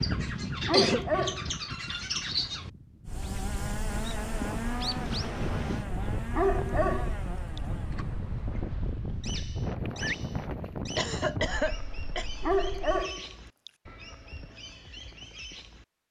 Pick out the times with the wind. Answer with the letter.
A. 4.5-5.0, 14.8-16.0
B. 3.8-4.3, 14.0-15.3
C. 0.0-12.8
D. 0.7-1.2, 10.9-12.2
C.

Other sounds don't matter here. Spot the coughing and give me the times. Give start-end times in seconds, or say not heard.
0.7-1.2, 10.9-12.2.